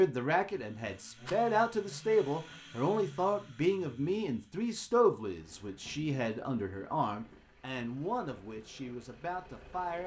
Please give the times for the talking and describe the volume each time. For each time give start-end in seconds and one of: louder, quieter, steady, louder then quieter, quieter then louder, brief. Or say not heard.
0.0-10.0 quieter.